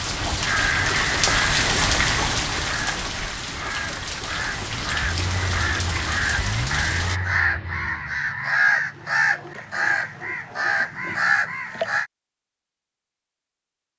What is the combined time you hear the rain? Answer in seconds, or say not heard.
7 s.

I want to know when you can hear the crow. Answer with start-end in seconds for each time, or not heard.
0.4-12.1.